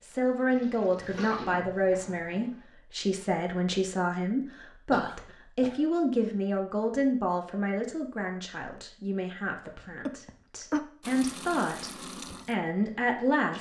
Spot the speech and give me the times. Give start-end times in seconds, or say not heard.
0.0-13.5.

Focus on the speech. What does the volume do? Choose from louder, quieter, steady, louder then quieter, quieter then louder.
quieter then louder.